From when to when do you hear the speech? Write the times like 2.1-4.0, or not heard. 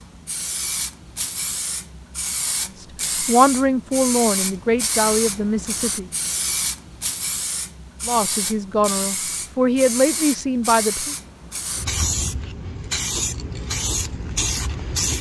3.2-6.1, 8.1-11.2.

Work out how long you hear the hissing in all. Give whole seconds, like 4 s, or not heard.
15 s.